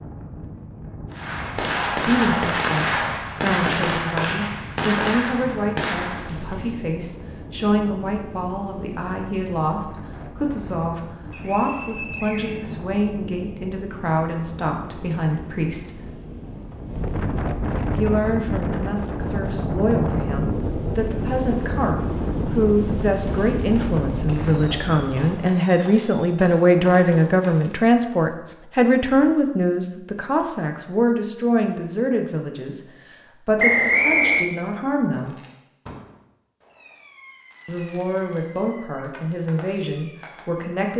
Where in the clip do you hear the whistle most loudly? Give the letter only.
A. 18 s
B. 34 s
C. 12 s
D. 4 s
B.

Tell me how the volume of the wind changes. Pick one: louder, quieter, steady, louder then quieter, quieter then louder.
louder.